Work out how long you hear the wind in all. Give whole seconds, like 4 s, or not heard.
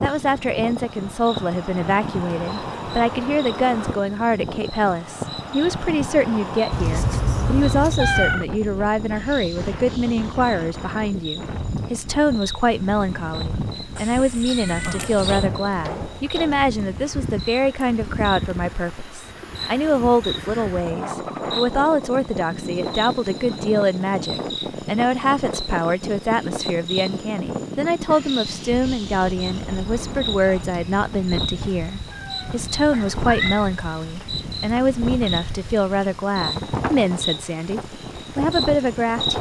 39 s.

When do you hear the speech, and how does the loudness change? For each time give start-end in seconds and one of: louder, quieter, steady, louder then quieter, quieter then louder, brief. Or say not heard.
0.0-39.3 steady.